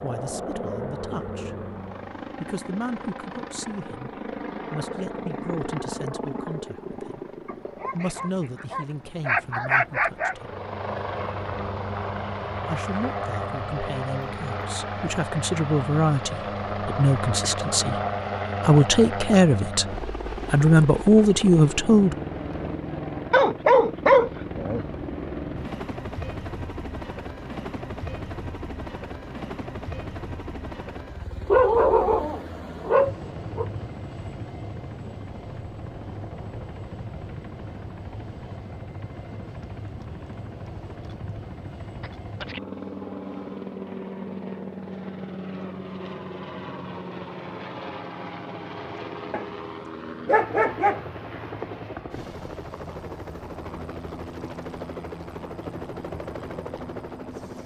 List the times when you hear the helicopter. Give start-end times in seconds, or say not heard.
0.0-57.6.